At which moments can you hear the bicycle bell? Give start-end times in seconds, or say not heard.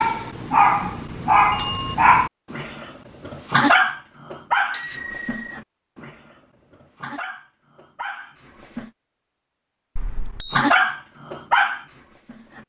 1.5-1.9, 4.7-5.5, 9.9-10.7.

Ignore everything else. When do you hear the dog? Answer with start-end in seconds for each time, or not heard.
0.0-8.9, 10.5-12.6.